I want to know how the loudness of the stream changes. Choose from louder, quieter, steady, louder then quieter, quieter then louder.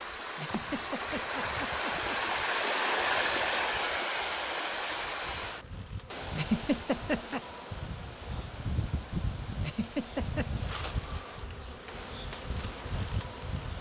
quieter.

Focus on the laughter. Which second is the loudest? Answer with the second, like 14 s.
7 s.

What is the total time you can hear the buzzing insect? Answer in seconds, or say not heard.
14 s.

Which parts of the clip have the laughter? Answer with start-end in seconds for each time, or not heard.
0.3-2.2, 6.3-7.4, 9.6-10.5.